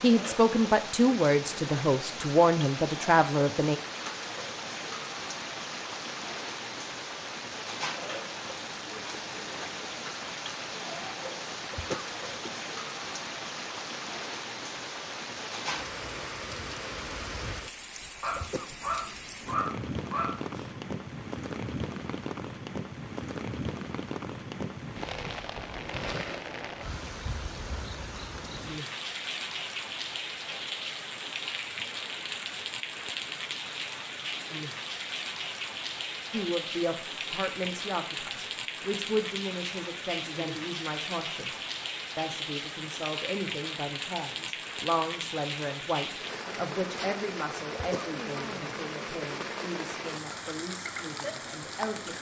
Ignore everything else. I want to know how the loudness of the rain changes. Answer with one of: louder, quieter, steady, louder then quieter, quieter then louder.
steady.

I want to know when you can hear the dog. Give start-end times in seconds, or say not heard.
18.2-20.8.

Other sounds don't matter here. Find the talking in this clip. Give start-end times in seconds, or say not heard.
0.0-3.8, 36.3-52.1.